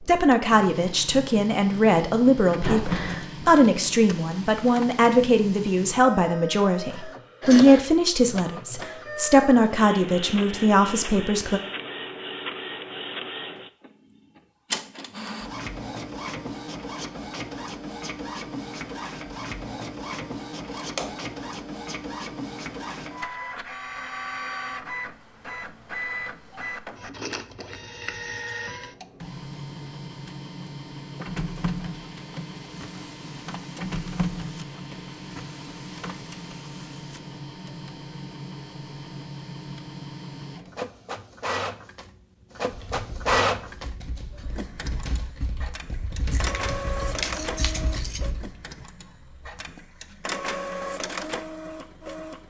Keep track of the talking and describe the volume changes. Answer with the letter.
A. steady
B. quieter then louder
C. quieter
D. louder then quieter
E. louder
A.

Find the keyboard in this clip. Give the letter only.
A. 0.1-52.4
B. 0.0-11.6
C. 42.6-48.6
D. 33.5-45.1
C.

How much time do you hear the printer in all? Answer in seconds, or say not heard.
52 s.